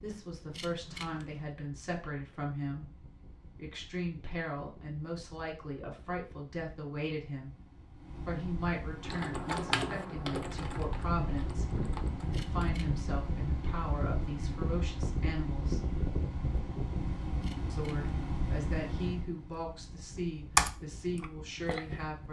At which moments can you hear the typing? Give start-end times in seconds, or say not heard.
9.0-12.7, 20.1-22.0.